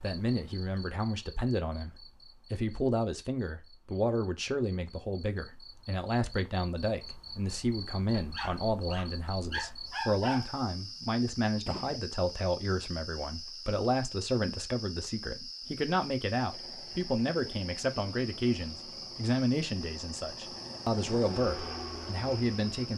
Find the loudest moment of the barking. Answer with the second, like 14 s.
10 s.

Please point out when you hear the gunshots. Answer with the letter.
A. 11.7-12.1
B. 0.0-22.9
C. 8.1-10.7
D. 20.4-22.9
A.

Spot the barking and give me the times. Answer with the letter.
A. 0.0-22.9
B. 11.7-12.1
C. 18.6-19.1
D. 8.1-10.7
D.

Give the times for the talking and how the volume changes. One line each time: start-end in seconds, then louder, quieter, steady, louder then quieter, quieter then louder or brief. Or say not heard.
0.0-22.9 steady.